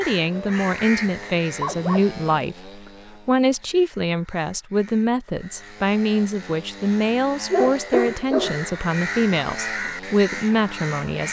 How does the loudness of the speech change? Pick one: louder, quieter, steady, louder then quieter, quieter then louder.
steady.